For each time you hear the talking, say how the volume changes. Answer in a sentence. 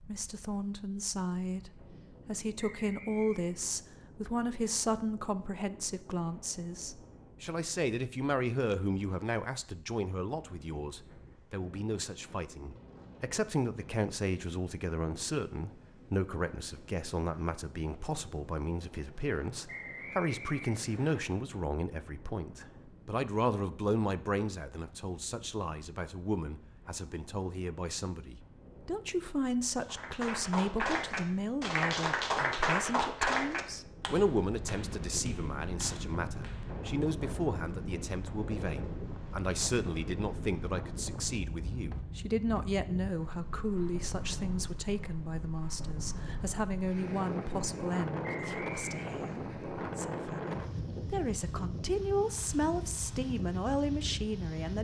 The talking can be heard from 0.0 to 54.7 s, at a steady volume.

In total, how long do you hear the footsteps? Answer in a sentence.
The footsteps can't be heard in this clip.